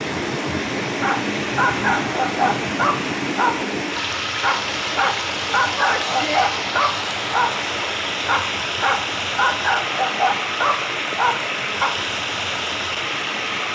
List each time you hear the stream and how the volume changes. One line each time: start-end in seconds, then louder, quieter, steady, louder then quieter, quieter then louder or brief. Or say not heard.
0.0-13.7 steady.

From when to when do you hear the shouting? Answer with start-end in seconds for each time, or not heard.
5.8-6.5.